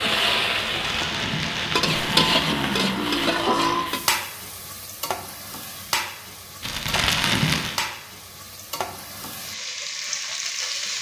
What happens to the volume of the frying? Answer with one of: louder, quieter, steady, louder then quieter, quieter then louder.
quieter.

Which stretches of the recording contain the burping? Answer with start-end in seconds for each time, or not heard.
1.8-3.9.